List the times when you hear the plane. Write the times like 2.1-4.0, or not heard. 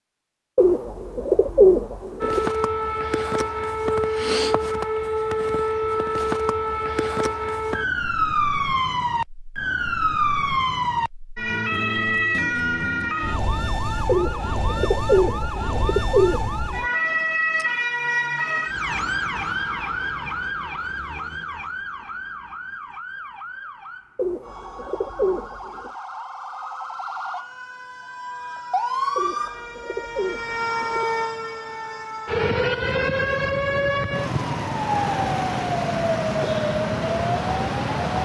not heard.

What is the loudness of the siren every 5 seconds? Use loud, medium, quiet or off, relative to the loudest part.
loud, loud, loud, loud, medium, medium, loud, loud.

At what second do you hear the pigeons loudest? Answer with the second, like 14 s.
2 s.